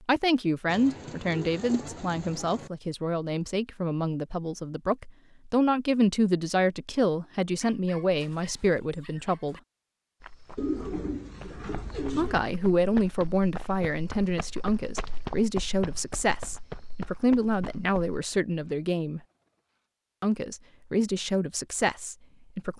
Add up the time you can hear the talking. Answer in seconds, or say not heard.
19 s.